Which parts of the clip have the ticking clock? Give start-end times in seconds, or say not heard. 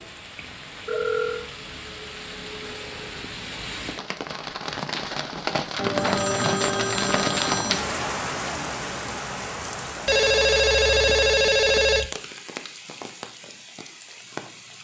not heard.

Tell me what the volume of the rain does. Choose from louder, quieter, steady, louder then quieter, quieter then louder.
louder then quieter.